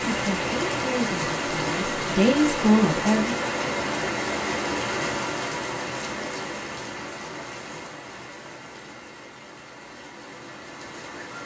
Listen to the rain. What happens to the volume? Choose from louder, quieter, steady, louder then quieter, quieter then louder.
quieter.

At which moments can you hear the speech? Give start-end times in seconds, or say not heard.
0.1-3.4.